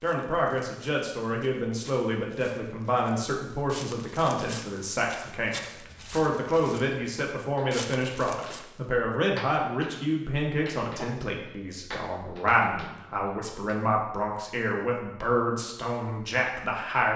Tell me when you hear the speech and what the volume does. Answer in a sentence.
The speech can be heard from 0.0 to 17.1 s, at a steady volume.